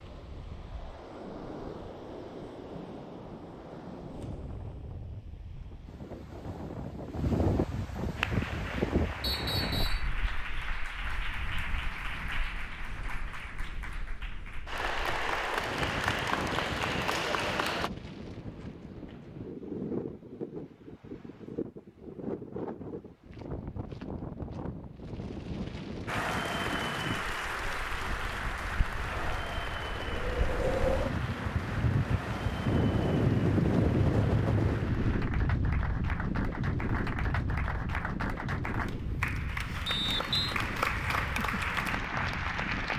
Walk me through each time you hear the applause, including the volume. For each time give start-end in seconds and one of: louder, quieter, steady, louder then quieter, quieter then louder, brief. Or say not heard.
8.2-17.9 louder
26.1-42.9 quieter then louder.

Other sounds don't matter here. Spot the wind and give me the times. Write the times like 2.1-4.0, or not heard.
0.0-42.9.